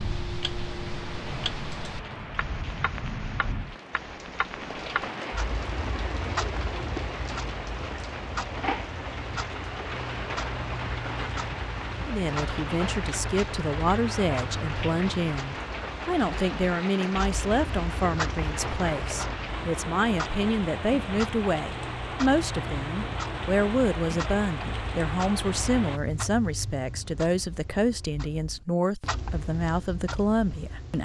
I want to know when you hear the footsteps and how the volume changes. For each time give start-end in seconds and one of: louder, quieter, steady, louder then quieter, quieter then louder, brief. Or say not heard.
not heard.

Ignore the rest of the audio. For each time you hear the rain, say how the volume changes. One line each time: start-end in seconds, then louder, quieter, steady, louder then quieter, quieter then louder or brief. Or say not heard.
0.0-26.0 steady.